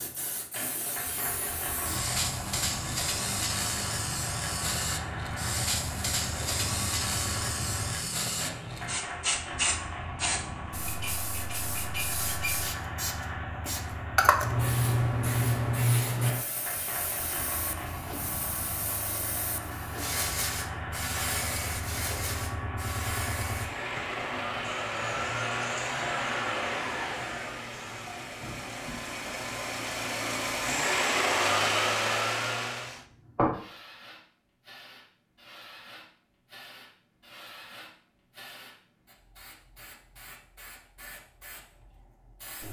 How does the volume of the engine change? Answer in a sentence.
The volume of the engine goes up.